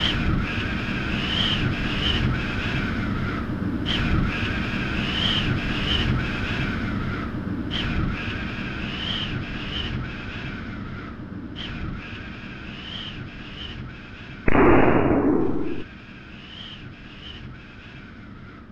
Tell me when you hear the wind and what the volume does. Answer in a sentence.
You can hear the wind from 0.0 to 18.6 s, getting quieter.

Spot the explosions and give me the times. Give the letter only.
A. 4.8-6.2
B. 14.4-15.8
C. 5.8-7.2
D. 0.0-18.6
B.